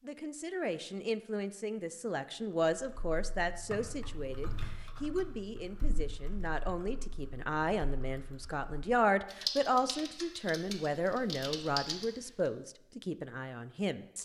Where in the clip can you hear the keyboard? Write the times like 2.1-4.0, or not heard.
2.7-12.5.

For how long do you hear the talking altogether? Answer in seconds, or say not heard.
14 s.